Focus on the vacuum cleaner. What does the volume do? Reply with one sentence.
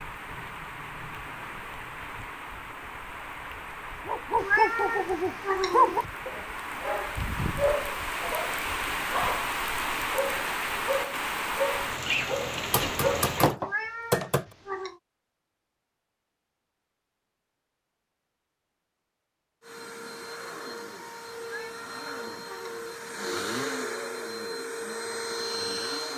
The loudness of the vacuum cleaner goes up.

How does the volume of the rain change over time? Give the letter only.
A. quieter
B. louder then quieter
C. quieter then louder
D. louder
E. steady
D.